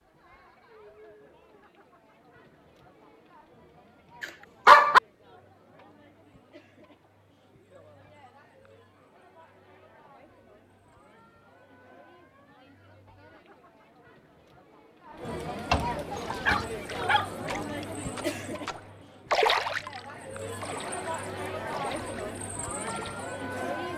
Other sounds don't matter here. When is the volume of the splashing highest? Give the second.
19 s.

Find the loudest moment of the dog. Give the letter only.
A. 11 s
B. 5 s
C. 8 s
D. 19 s
B.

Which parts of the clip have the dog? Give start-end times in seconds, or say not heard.
4.2-5.0, 15.7-17.3.